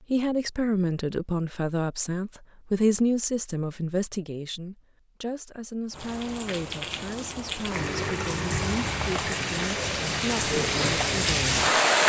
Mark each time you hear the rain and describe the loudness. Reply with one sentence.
The rain can be heard from 5.9 to 12.0 s, getting louder.